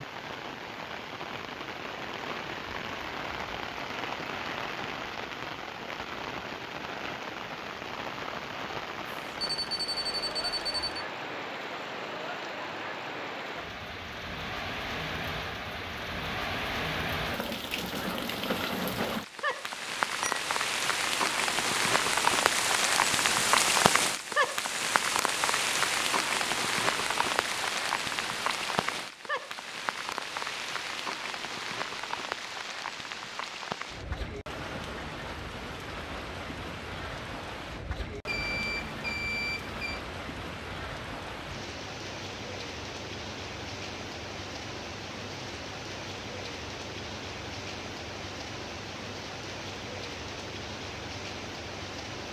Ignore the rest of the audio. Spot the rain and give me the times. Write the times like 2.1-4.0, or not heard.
0.0-52.2.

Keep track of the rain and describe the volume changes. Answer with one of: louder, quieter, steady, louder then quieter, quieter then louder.
louder then quieter.